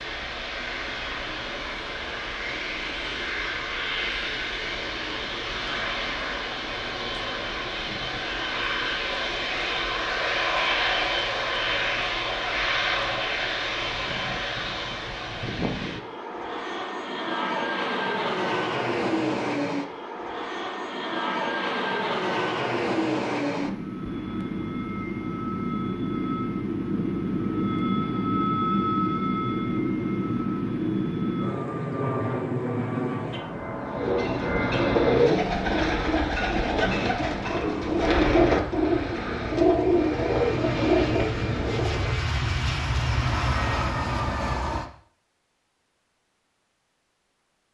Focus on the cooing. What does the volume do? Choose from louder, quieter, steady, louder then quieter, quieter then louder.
steady.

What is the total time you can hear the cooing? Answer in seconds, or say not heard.
8 s.